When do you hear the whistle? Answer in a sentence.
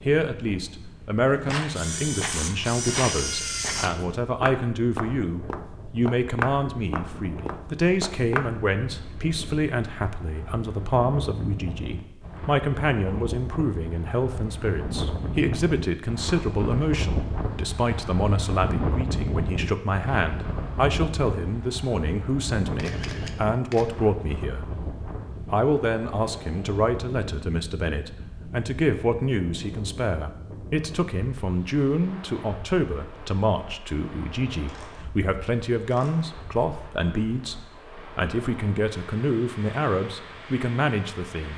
You can't hear the whistle here.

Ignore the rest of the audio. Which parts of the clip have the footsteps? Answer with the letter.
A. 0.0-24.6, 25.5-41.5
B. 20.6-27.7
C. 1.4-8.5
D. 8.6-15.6
C.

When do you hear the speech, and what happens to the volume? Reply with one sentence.
The speech can be heard from 0.0 to 24.6 s, at a steady volume; and from 25.5 to 41.5 s, at a steady volume.